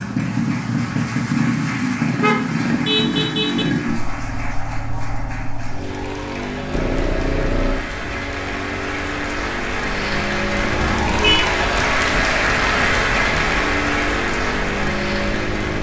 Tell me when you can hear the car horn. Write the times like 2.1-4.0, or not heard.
2.1-3.6, 6.7-7.9, 10.7-11.4.